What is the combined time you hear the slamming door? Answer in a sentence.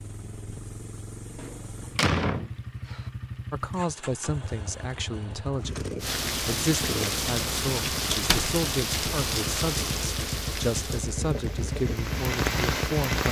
You can hear the slamming door for 2 seconds altogether.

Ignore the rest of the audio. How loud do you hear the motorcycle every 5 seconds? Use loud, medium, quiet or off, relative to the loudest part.
medium, loud, loud.